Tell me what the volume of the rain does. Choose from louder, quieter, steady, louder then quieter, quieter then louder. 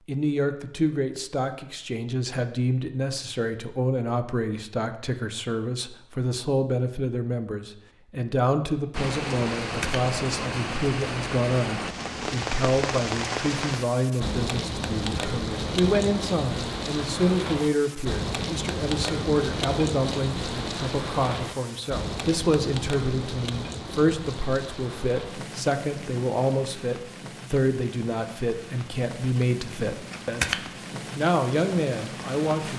quieter.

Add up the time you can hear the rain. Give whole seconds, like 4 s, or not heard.
24 s.